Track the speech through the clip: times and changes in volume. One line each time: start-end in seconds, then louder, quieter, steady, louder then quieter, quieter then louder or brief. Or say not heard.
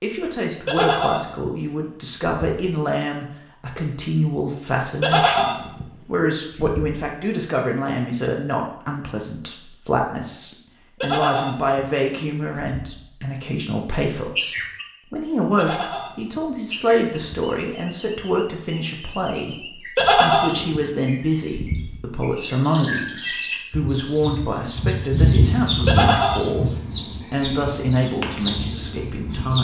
0.0-29.5 steady.